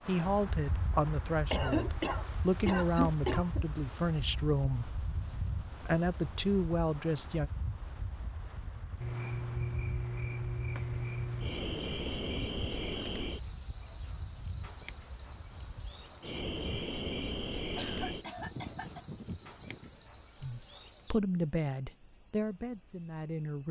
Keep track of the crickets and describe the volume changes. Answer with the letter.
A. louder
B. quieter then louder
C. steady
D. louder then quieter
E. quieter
C.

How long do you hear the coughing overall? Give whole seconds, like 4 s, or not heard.
4 s.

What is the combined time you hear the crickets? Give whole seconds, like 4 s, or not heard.
15 s.